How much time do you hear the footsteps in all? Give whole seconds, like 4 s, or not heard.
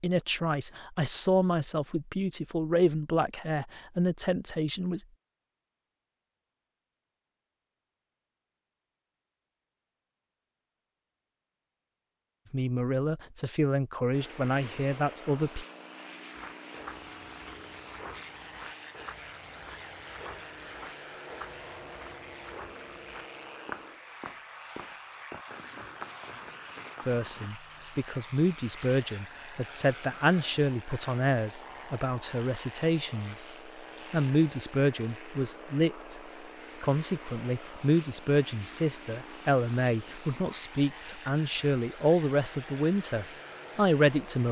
11 s.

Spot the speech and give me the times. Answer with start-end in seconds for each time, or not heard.
0.0-5.0, 12.5-15.7, 27.1-33.5, 34.1-36.2, 36.8-44.4.